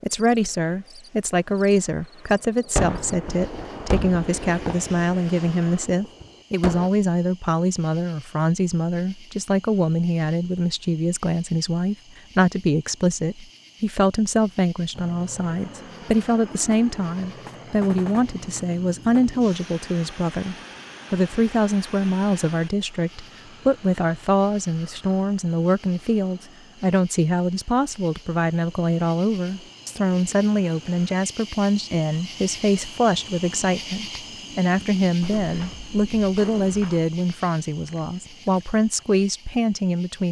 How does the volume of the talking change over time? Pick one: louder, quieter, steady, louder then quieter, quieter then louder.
steady.